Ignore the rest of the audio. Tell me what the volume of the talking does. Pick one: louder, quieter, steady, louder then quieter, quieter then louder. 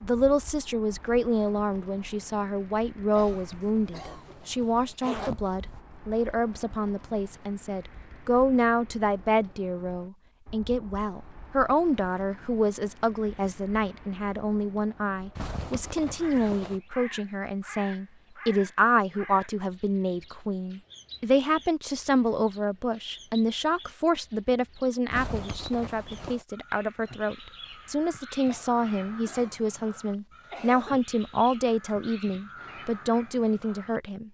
steady.